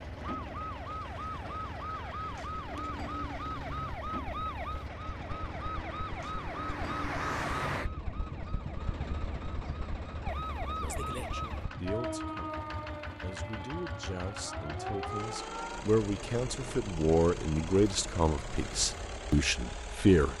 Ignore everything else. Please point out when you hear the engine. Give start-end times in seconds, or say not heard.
0.0-20.3.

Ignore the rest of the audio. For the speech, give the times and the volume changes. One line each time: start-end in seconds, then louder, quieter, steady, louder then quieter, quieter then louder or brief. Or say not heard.
11.3-12.5 brief
13.2-20.3 louder.